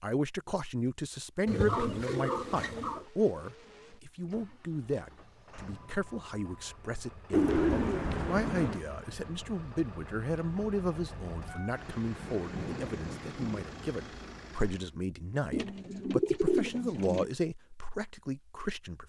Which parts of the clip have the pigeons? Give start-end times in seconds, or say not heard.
1.4-3.0, 7.3-8.8, 15.5-17.2.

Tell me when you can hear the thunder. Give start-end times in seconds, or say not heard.
12.3-13.7.